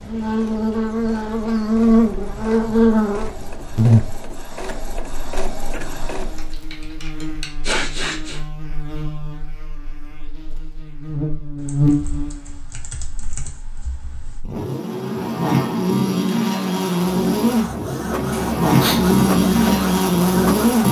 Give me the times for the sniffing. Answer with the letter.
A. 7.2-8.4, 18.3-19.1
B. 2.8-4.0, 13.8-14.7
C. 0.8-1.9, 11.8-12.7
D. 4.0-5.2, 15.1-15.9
A.